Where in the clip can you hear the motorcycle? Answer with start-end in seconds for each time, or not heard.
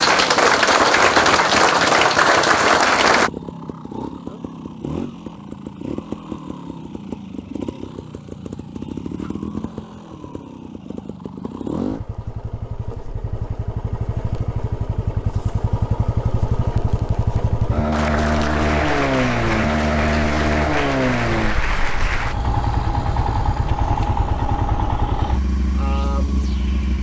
0.0-26.9.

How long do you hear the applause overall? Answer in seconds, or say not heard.
8 s.